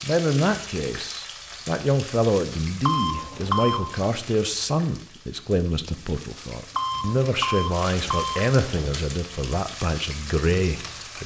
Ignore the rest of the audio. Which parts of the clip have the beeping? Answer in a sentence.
The beeping can be heard from 2.8 to 4.0 s and from 6.8 to 9.1 s.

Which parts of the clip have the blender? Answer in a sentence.
The blender can't be heard in this clip.